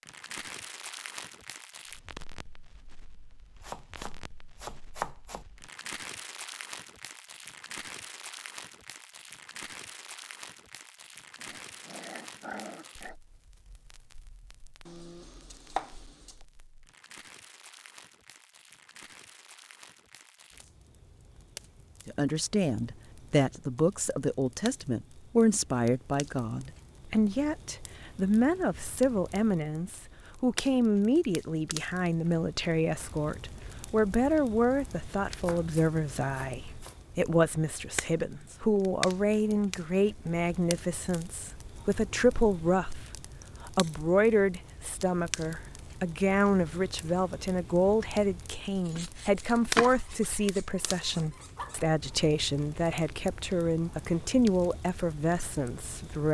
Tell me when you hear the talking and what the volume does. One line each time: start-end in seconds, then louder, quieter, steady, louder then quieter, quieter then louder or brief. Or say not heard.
22.1-56.2 steady.